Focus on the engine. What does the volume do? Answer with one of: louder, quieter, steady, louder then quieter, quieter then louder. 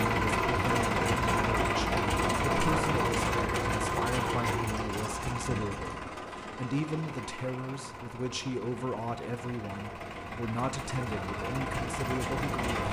quieter then louder.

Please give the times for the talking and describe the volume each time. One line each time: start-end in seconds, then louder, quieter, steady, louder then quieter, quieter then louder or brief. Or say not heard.
0.0-12.8 steady.